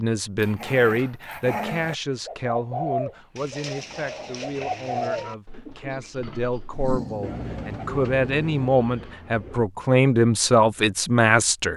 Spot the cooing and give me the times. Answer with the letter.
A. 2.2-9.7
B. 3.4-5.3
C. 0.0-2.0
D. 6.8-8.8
A.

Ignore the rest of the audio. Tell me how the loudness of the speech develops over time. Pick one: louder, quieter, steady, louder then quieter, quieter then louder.
quieter then louder.